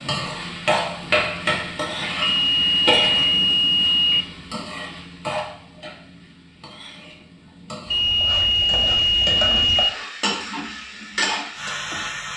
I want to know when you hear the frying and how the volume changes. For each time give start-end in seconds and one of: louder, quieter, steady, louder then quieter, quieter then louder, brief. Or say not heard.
0.0-12.3 quieter then louder.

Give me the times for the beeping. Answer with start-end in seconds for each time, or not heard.
2.2-4.2, 7.9-9.9.